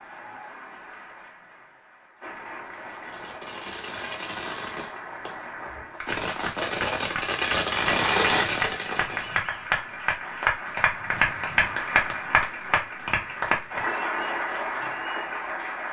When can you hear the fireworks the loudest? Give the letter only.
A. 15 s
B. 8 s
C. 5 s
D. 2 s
B.